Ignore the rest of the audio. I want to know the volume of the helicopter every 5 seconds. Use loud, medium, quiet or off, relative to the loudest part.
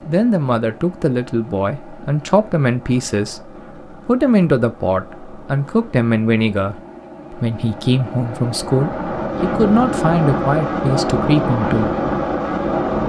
quiet, medium, loud.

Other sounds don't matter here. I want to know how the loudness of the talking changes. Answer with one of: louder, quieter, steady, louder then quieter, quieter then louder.
steady.